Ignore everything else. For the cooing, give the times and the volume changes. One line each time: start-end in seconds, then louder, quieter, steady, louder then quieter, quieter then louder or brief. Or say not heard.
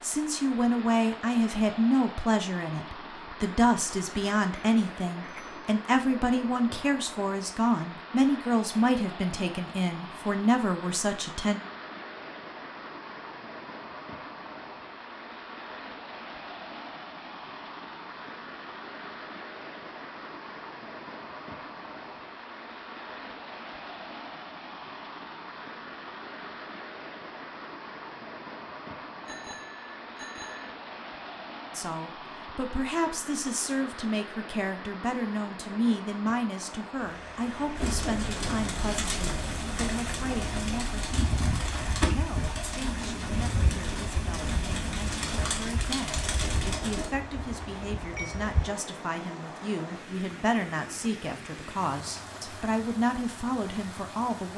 37.8-47.1 steady.